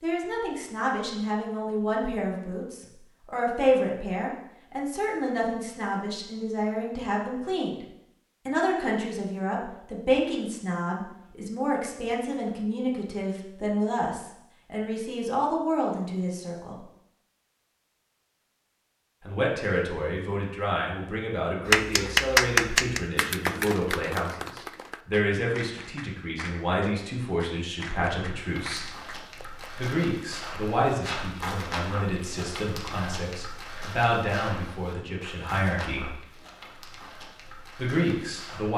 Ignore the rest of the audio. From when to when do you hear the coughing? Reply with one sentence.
The coughing can't be heard in this clip.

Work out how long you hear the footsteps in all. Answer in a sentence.
You can hear the footsteps for 10 seconds altogether.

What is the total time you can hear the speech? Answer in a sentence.
You can hear the speech for 33 seconds altogether.